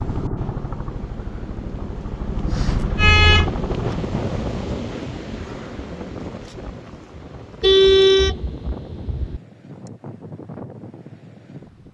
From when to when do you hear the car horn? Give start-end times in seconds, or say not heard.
2.6-3.5, 7.6-9.4.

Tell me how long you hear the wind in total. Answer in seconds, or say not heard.
12 s.